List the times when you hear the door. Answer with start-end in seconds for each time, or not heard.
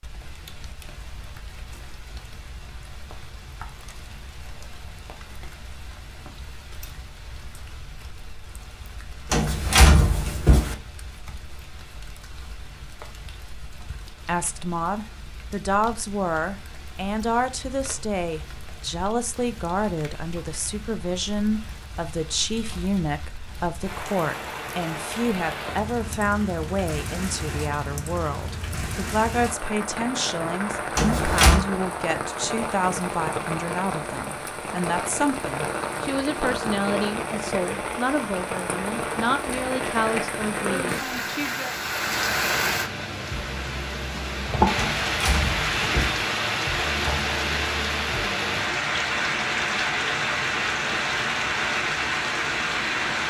9.3-10.8, 30.9-31.6, 44.8-46.2.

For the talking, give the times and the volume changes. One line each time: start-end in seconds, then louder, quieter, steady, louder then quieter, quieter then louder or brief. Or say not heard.
14.2-41.8 steady.